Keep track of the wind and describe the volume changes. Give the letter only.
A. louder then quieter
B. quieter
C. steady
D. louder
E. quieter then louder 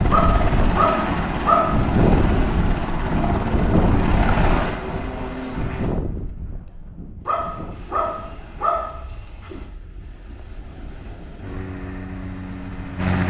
B.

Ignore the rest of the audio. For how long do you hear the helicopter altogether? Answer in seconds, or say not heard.
8 s.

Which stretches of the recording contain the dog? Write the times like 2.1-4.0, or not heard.
0.1-1.9, 7.2-9.7.